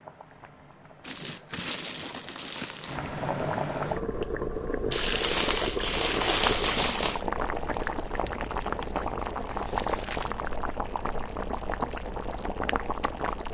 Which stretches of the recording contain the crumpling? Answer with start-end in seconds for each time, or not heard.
1.0-3.0, 4.9-7.2, 9.5-10.3.